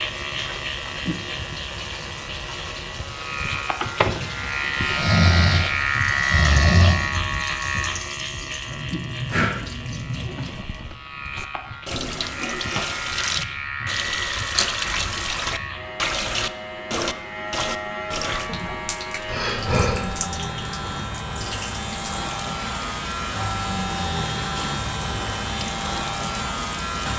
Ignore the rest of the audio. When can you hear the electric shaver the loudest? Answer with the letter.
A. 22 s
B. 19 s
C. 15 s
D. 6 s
D.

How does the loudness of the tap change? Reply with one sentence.
The loudness of the tap goes up, then down.